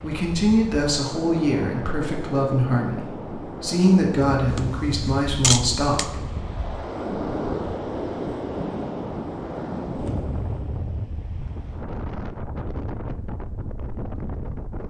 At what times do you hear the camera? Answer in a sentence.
The camera can be heard from 4.5 to 6.1 s.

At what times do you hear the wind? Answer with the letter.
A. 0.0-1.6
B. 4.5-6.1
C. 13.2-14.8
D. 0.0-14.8
D.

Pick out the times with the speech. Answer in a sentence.
The speech can be heard from 0.0 to 6.2 s.